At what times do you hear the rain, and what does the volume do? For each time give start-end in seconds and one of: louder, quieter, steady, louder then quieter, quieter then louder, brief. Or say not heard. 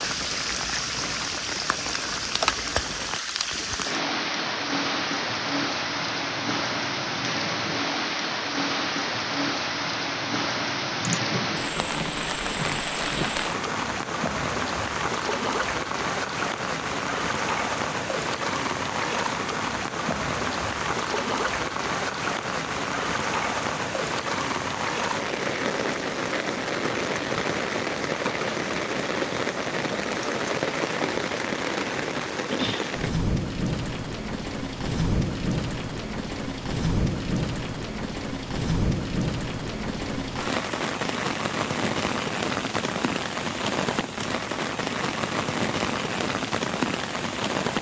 0.0-47.7 steady.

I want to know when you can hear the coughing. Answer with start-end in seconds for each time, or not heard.
11.0-11.7.